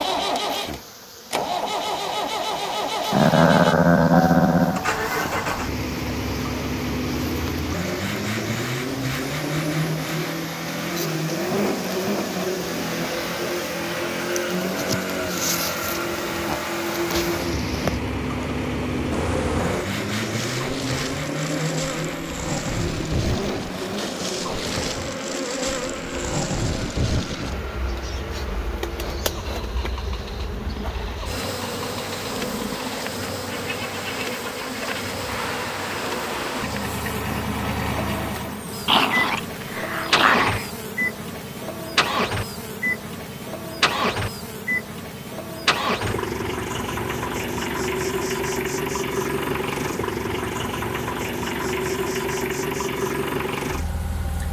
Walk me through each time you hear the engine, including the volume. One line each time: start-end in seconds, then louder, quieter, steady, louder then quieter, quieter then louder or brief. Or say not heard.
0.0-54.4 quieter then louder.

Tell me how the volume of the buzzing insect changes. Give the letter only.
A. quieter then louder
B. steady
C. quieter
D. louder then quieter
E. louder
D.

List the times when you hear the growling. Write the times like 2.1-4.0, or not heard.
3.1-4.8, 38.9-40.7.